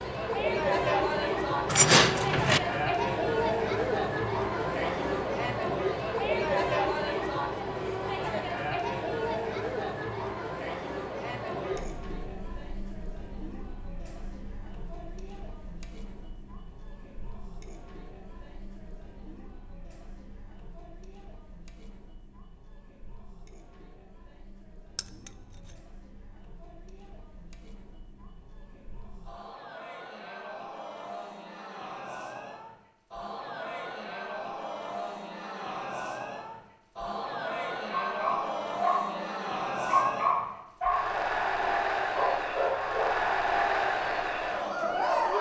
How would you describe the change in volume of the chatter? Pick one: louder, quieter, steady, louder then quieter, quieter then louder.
quieter then louder.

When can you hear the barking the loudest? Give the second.
40 s.